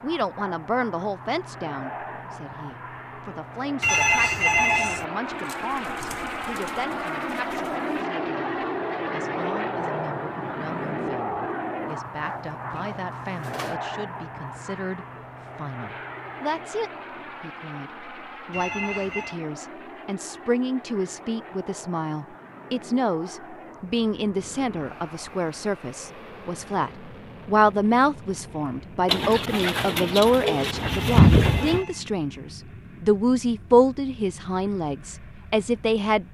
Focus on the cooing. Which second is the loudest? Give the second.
31 s.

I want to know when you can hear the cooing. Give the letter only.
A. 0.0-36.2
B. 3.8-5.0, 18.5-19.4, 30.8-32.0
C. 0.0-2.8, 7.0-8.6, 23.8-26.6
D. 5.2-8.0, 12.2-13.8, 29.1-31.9
D.